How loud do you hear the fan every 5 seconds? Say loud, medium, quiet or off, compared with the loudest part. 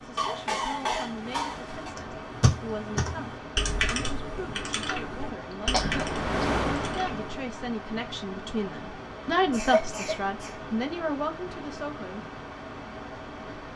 medium, loud, medium.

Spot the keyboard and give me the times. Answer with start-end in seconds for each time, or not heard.
1.9-7.3.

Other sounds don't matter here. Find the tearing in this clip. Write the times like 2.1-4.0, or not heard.
not heard.